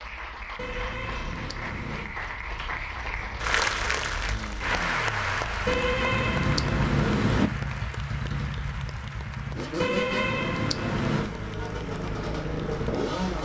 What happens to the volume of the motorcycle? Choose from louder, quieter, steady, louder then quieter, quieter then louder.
louder.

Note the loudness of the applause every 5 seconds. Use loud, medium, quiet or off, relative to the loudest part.
loud, loud, quiet.